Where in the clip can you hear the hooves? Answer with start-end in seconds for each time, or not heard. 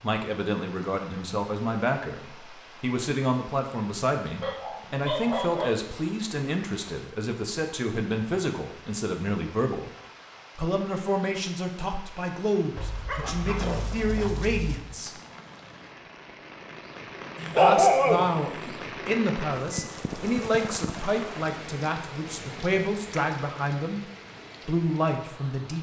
not heard.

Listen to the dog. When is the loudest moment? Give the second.
18 s.